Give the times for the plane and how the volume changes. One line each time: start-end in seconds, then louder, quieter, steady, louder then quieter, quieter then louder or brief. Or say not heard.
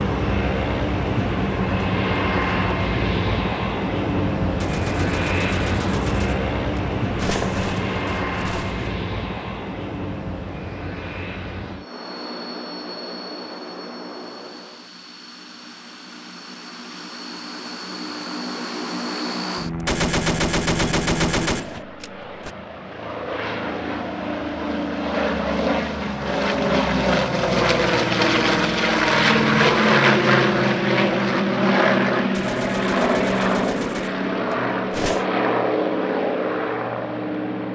0.0-37.7 quieter then louder.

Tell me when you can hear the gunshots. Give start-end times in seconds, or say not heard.
4.6-8.9, 19.9-22.5, 32.4-35.2.